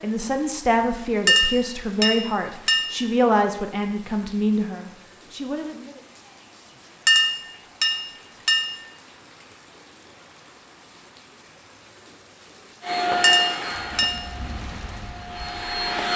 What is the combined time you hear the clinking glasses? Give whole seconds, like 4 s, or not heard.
4 s.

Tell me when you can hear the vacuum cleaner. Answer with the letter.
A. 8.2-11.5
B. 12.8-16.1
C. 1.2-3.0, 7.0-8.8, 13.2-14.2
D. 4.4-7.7
B.